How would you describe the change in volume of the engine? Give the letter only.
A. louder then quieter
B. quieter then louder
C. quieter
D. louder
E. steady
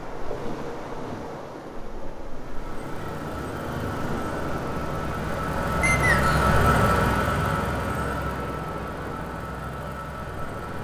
A.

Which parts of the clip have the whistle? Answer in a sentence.
The whistle can be heard from 5.8 to 6.5 s.